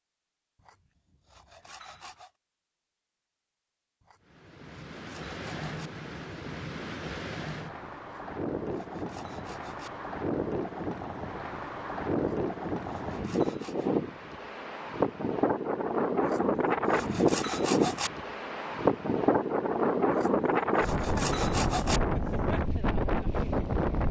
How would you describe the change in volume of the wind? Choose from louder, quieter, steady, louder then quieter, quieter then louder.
louder.